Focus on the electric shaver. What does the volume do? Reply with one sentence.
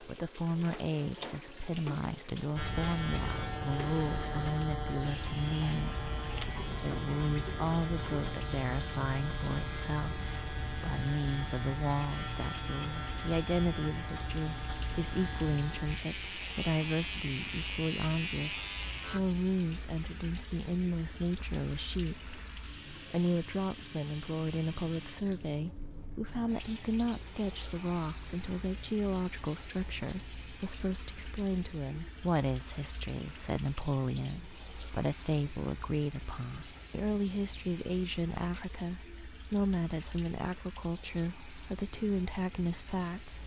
The volume of the electric shaver stays about the same.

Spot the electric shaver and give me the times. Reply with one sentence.
The electric shaver can be heard from 2.5 to 19.2 s.